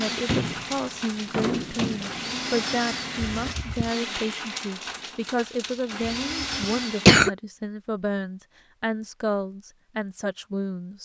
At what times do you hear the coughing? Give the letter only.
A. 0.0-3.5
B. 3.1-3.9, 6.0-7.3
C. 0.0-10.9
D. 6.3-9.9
B.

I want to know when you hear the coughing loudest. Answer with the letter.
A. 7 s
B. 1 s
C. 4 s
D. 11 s
A.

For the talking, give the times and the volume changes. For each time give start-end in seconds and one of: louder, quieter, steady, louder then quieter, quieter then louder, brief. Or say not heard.
0.0-10.9 steady.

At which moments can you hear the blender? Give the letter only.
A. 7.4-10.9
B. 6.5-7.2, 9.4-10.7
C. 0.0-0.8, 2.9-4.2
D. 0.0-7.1
D.